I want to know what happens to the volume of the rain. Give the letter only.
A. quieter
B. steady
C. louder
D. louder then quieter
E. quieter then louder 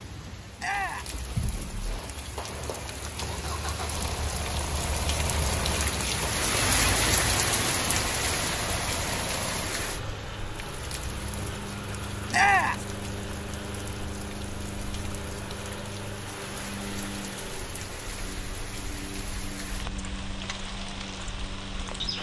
D.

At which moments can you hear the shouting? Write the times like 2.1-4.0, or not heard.
0.6-1.1, 12.3-12.8.